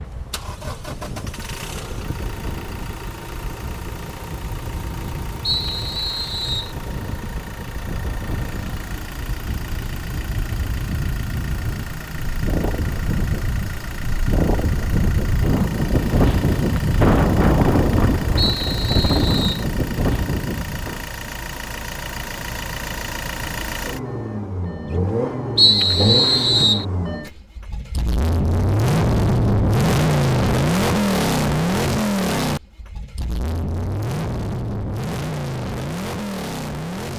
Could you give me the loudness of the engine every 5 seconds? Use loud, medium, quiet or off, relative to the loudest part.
quiet, quiet, quiet, quiet, medium, loud, loud, medium.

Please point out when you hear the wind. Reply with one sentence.
The wind can be heard from 0.0 to 21.1 s.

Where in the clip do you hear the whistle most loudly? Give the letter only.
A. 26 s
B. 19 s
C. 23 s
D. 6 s
A.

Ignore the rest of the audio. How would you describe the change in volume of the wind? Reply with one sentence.
The volume of the wind goes up.